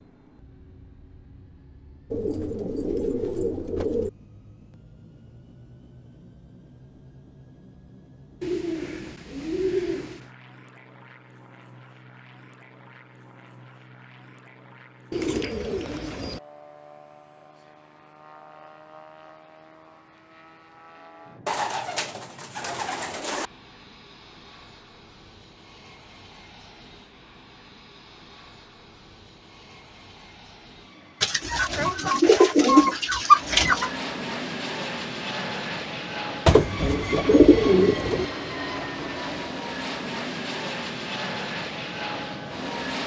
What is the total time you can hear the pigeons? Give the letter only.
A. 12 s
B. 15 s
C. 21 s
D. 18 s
A.